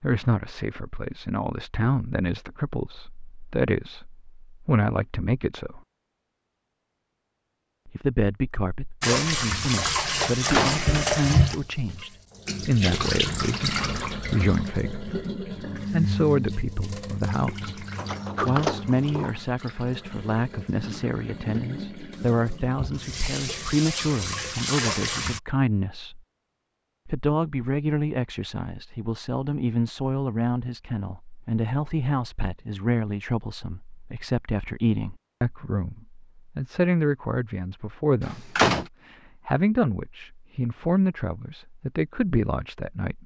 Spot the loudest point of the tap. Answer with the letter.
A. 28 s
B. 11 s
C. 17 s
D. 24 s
B.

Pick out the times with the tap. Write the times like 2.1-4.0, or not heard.
9.0-25.4.